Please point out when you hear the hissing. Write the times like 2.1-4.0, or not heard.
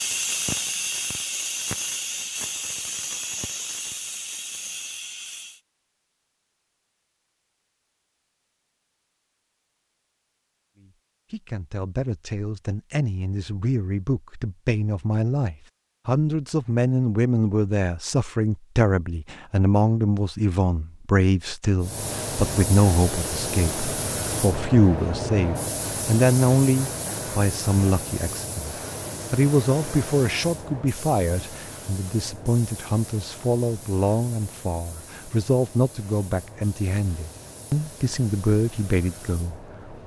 0.0-5.6, 21.8-40.0.